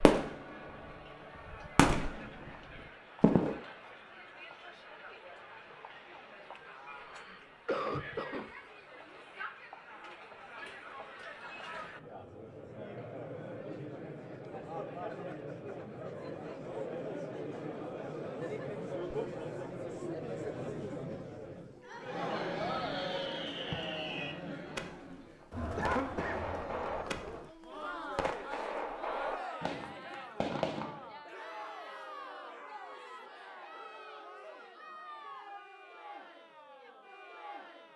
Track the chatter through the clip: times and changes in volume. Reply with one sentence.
The chatter can be heard from 0.0 to 37.9 s, getting louder then quieter.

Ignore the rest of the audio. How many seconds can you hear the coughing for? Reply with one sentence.
You can hear the coughing for 2 seconds altogether.